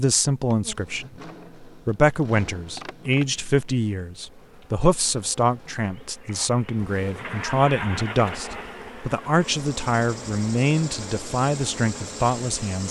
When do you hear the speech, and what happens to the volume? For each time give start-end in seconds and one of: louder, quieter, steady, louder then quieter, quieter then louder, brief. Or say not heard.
0.0-12.8 steady.